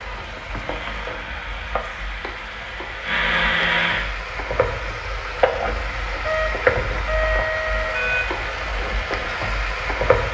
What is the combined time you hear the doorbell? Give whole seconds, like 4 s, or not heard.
2 s.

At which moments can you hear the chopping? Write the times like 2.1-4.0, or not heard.
not heard.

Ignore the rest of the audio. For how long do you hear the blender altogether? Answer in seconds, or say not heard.
4 s.